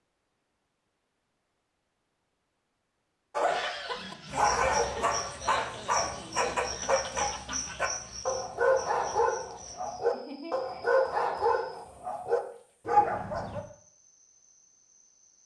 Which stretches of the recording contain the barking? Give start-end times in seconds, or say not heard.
3.4-13.7.